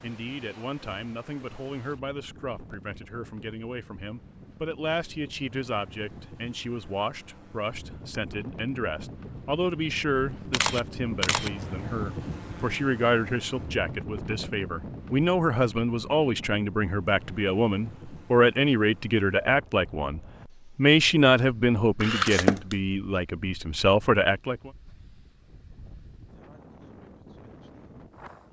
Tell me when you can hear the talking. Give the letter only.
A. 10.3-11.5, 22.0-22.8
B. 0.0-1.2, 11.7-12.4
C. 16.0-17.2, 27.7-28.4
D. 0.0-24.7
D.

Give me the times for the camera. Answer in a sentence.
You can hear the camera from 10.3 to 11.5 s and from 22.0 to 22.8 s.